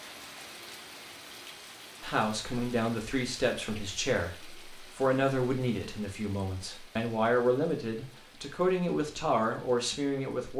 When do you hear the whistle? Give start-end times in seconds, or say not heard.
not heard.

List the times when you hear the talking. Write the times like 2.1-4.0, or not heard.
2.0-10.5.